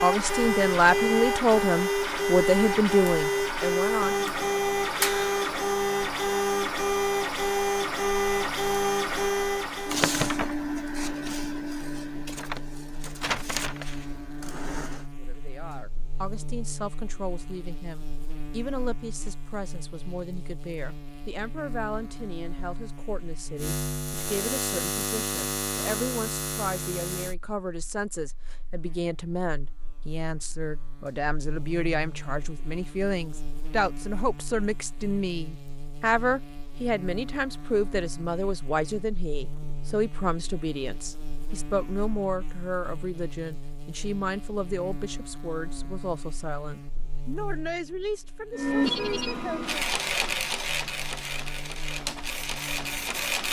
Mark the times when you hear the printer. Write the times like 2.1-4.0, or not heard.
0.0-15.1, 48.5-53.4.